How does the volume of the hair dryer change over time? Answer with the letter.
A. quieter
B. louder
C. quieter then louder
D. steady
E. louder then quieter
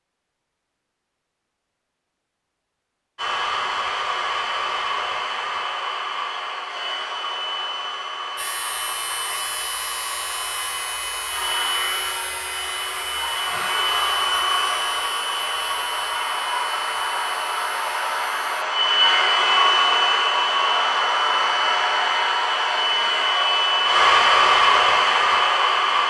B.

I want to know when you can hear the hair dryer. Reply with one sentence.
The hair dryer can be heard from 3.1 to 26.0 s.